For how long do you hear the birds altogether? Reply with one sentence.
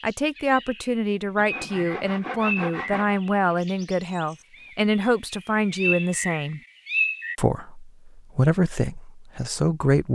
You can hear the birds for 7 seconds altogether.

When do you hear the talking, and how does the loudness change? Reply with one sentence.
You can hear the talking from 0.0 to 6.6 s, at a steady volume; and briefly from 7.3 to 10.0 s.